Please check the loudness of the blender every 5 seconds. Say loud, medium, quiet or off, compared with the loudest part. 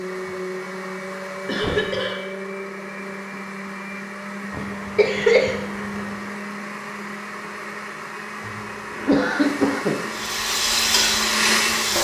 medium, medium, loud.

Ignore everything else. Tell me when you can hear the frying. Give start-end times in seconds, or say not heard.
10.1-11.9.